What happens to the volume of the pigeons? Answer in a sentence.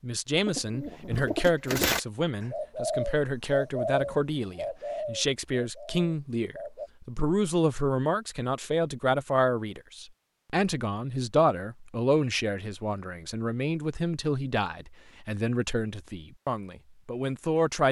The loudness of the pigeons goes down.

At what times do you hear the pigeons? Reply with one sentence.
The pigeons can be heard from 0.5 to 6.9 s.